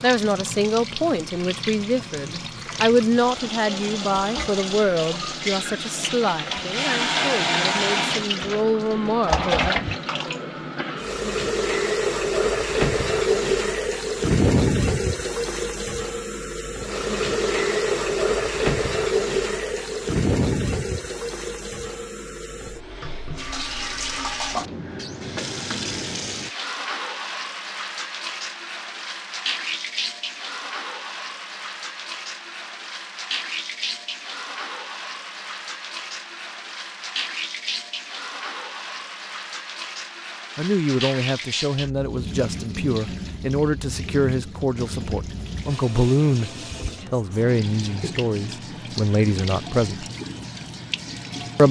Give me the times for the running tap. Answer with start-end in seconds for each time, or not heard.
0.0-51.6.